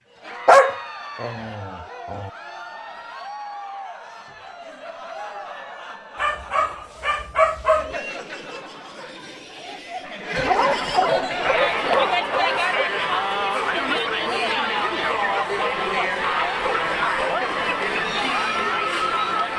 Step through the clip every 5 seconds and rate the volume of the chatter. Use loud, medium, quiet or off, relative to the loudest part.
quiet, quiet, loud, loud.